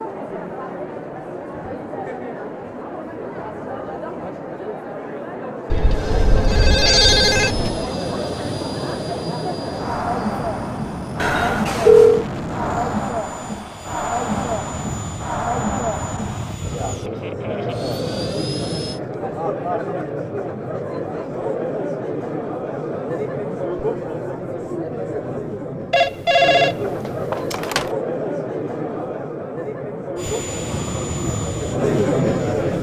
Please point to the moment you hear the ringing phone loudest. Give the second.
12 s.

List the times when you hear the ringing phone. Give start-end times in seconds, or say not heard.
5.7-7.7, 11.2-12.2, 25.9-27.9.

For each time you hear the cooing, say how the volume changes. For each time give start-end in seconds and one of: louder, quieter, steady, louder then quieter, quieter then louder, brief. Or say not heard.
not heard.